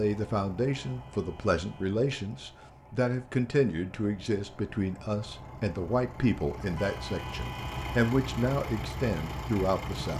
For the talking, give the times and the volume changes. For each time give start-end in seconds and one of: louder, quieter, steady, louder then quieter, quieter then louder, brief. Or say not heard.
0.0-10.1 steady.